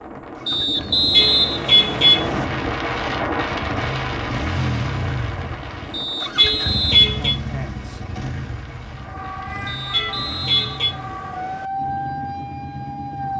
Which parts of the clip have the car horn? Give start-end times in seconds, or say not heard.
1.1-2.3, 6.3-7.3, 9.9-10.9.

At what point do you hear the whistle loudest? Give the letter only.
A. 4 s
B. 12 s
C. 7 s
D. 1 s
D.